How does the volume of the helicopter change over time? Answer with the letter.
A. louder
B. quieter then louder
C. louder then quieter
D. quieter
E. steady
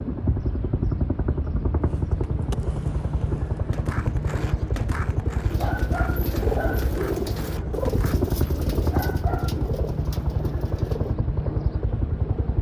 E.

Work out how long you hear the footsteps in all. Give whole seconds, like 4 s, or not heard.
not heard.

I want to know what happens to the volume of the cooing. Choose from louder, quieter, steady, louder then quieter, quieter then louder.
quieter.